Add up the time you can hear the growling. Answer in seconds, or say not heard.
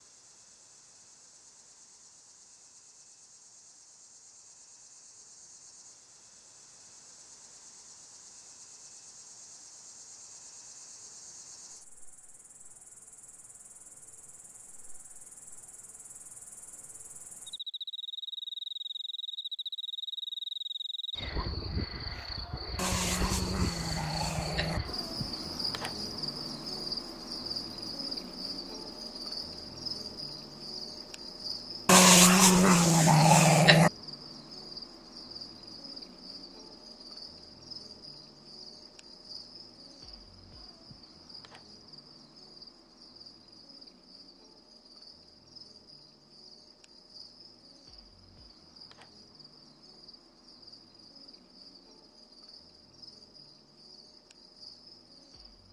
4 s.